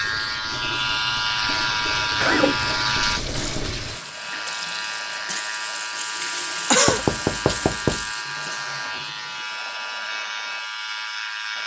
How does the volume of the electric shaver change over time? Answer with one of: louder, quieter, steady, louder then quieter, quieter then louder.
quieter.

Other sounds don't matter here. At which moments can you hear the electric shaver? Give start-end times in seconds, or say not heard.
0.0-11.6.